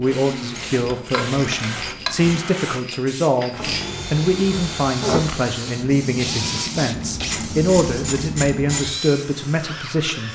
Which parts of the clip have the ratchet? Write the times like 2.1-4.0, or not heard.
0.6-2.4, 6.9-8.9.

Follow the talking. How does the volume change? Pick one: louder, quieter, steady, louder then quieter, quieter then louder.
steady.